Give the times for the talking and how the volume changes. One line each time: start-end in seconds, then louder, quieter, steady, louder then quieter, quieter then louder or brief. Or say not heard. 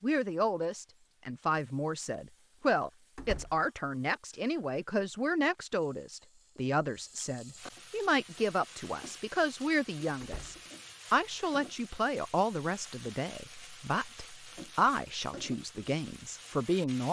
0.0-17.0 steady.